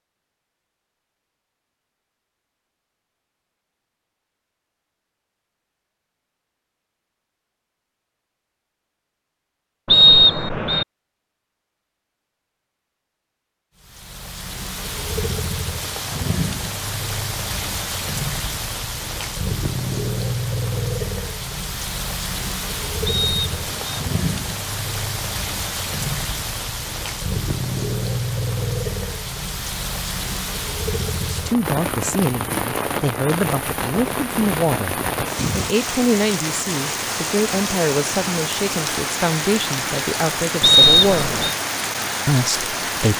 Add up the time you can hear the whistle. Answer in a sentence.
You can hear the whistle for 3 seconds altogether.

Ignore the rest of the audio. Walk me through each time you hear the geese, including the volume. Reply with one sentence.
You can't hear the geese here.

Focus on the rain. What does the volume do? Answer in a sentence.
The volume of the rain stays about the same.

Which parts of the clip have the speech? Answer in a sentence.
You can hear the speech from 31.2 to 35.0 s, from 35.5 to 41.3 s and from 42.2 to 43.1 s.